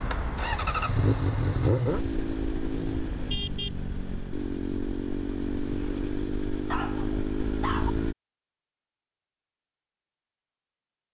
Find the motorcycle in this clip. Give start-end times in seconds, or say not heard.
0.0-8.2.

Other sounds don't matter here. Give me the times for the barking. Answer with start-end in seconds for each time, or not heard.
6.7-8.0.